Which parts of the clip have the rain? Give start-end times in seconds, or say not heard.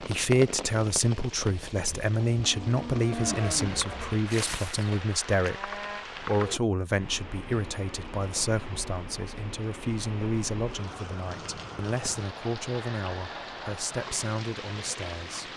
0.0-15.5.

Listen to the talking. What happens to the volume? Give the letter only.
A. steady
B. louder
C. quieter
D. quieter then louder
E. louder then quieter
C.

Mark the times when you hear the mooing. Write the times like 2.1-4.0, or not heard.
2.2-6.0.